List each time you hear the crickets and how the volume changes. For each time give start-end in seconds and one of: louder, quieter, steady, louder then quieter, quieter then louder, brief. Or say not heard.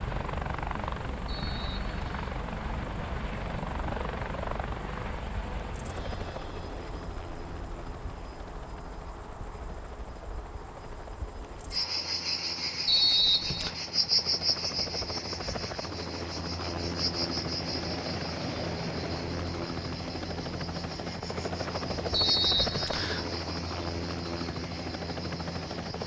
0.0-26.0 louder then quieter.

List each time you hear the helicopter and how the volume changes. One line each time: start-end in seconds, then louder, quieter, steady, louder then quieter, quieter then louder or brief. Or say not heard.
0.0-26.0 quieter then louder.